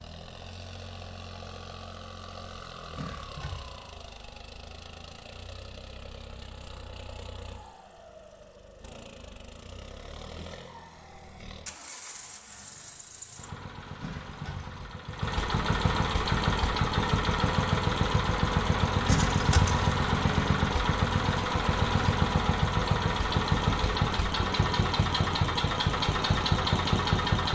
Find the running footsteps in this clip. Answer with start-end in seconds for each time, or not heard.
not heard.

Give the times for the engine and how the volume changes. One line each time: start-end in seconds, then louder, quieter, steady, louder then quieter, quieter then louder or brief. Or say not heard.
0.0-27.5 louder.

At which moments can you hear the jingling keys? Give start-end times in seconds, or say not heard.
3.0-3.8, 14.0-14.9, 19.1-19.9.